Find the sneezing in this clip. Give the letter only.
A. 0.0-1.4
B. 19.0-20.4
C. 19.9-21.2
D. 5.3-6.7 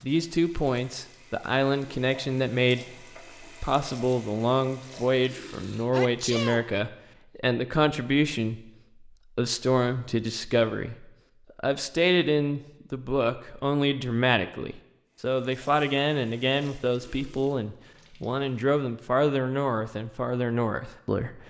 D.